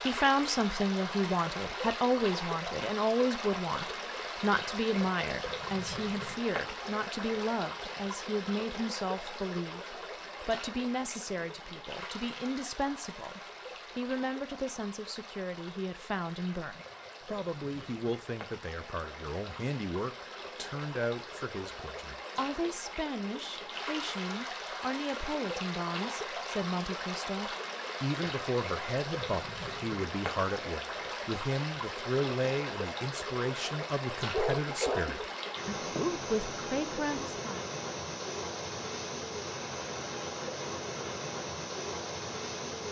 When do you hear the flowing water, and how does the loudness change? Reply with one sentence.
You can hear the flowing water from 0.0 to 42.8 s, getting quieter then louder.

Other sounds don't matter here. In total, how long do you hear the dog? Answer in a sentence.
The dog can be heard for 2 seconds in total.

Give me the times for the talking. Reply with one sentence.
The talking can be heard from 0.1 to 37.6 s.